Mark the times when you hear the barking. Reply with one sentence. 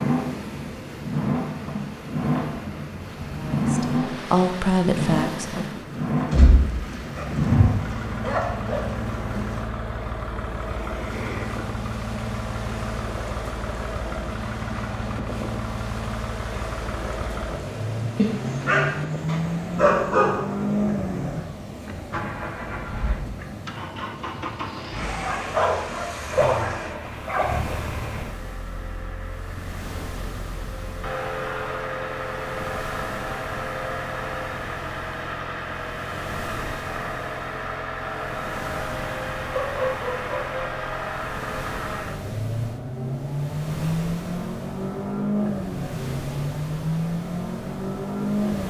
You can hear the barking from 6.3 to 8.9 s, from 18.1 to 20.4 s, from 24.8 to 27.5 s and from 39.5 to 40.5 s.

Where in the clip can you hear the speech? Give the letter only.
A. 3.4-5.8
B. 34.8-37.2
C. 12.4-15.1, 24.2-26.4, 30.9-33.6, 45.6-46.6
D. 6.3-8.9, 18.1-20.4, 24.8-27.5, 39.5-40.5
A.